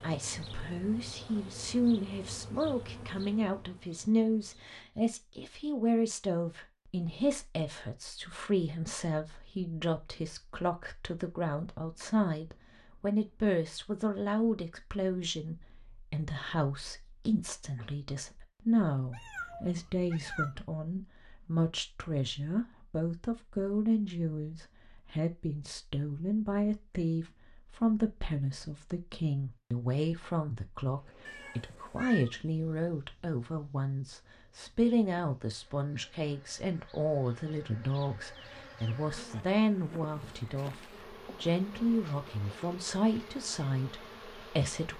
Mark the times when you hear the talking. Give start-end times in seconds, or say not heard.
0.0-44.9.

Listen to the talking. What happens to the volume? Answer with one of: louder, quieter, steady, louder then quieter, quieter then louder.
steady.